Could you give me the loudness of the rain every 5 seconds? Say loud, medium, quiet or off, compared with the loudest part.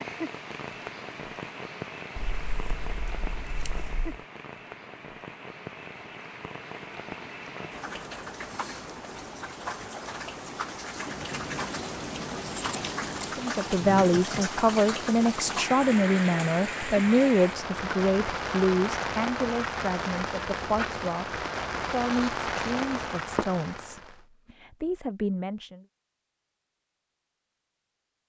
medium, medium, loud, loud, loud, off.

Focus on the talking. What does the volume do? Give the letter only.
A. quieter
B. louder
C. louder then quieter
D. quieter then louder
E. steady
A.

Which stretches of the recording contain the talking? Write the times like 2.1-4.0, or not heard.
13.3-25.9.